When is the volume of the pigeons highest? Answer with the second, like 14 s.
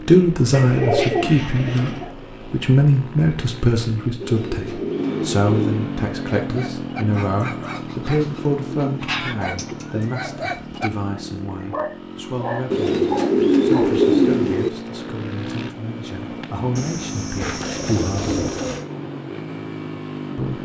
14 s.